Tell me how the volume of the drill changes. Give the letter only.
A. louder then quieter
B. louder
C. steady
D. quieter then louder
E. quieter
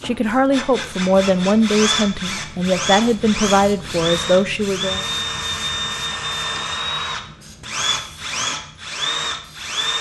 C.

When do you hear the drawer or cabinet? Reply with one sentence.
You can't hear the drawer or cabinet here.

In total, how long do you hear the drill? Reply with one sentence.
The drill can be heard for 10 seconds in total.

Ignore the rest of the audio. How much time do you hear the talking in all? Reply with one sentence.
You can hear the talking for 5 seconds altogether.